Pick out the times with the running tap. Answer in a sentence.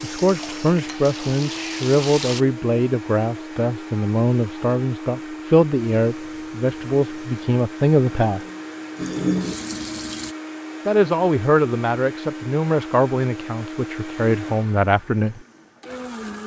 You can hear the running tap from 0.0 to 2.5 s and from 6.0 to 10.3 s.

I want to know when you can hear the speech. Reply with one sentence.
The speech can be heard from 0.0 to 8.4 s and from 10.8 to 15.4 s.